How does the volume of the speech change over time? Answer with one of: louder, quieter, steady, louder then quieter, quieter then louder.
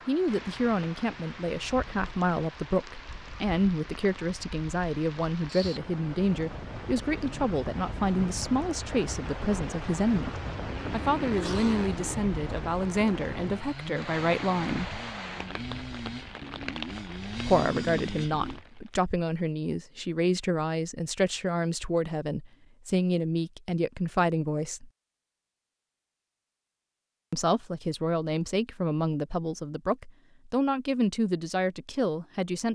steady.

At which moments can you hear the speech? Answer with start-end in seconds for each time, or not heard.
0.1-14.9, 17.4-24.9, 27.3-32.7.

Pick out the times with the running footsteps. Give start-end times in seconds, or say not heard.
not heard.